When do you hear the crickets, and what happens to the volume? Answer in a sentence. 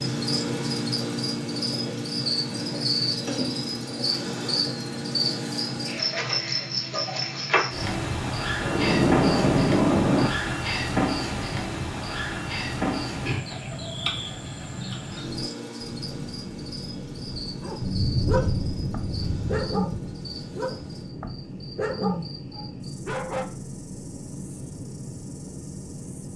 The crickets can be heard from 0.0 to 26.3 s, getting quieter.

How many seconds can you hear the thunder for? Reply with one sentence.
The thunder can be heard for 5 seconds in total.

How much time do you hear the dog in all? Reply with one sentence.
You can hear the dog for 6 seconds altogether.